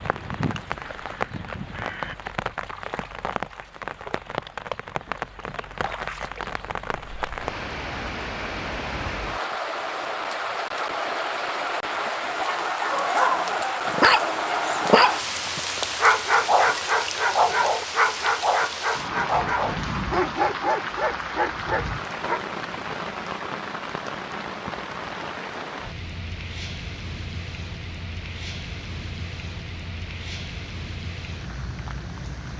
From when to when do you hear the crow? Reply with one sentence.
The crow can be heard from 0.0 to 2.1 s.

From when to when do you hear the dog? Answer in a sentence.
The dog can be heard from 12.9 to 22.4 s.